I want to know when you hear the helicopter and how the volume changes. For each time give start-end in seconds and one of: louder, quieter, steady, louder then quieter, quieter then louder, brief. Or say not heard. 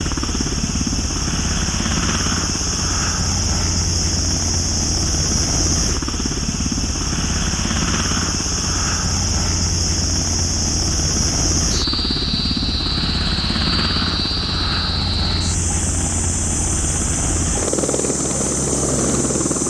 0.0-19.6 steady.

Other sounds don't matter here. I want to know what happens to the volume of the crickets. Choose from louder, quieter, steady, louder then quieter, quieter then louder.
steady.